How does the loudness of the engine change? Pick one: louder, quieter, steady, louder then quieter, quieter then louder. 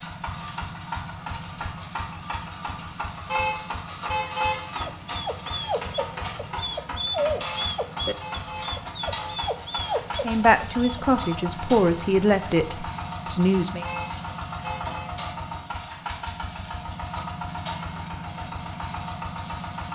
steady.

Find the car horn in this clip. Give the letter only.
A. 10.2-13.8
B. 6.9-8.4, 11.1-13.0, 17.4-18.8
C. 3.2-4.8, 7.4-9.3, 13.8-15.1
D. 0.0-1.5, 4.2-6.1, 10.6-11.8
C.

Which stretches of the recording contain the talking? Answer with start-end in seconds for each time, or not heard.
10.2-13.8.